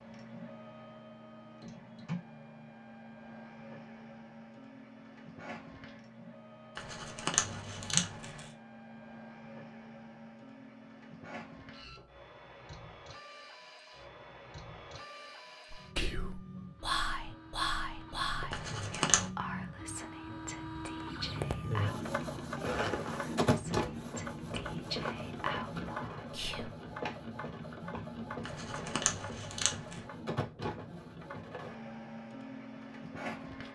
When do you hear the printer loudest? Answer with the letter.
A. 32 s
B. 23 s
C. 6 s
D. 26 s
B.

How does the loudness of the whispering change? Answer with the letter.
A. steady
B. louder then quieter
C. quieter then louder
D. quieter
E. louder
C.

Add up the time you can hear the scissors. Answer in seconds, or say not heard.
4 s.